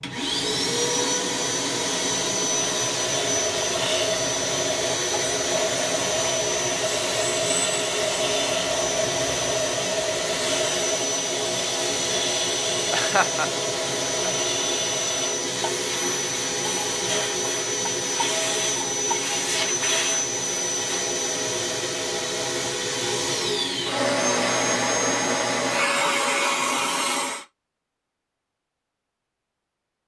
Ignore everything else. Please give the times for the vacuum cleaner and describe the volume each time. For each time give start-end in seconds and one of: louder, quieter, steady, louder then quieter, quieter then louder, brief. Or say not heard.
0.0-27.4 steady.